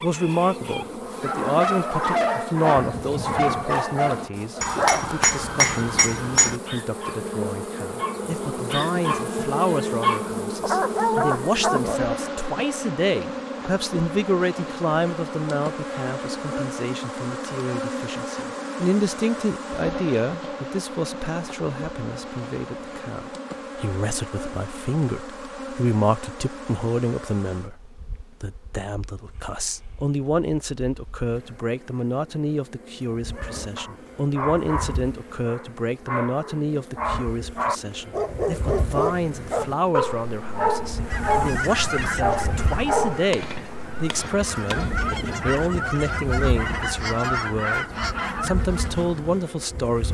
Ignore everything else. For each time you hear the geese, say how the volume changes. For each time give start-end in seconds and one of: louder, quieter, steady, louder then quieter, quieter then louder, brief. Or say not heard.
41.0-49.5 quieter then louder.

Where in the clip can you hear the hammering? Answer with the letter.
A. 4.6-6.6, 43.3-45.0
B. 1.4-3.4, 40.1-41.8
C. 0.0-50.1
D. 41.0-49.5
A.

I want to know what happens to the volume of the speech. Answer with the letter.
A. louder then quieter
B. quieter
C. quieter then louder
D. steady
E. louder
D.